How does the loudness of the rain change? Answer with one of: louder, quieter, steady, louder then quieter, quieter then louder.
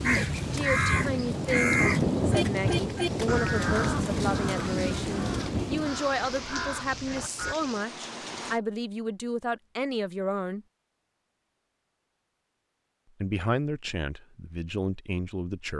quieter.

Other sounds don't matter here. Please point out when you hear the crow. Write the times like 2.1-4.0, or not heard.
0.0-7.5.